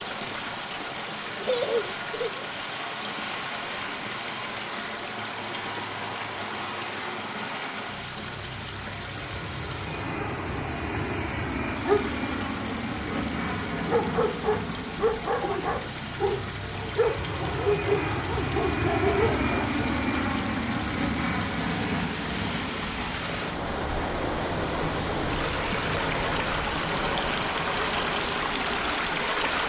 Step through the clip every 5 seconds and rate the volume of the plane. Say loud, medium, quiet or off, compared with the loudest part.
medium, medium, loud, loud, loud, loud.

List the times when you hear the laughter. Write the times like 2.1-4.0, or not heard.
1.4-2.5.